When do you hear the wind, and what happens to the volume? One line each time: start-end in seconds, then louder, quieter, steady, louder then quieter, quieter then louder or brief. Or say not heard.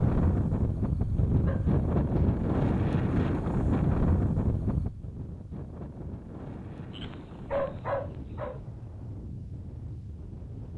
0.0-10.7 quieter.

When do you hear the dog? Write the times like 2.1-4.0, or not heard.
1.4-2.4, 6.9-8.6.